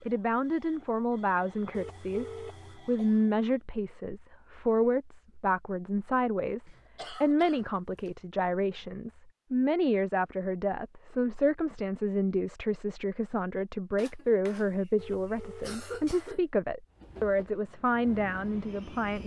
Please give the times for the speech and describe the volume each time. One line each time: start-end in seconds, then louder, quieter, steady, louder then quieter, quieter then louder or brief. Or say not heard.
0.0-19.2 steady.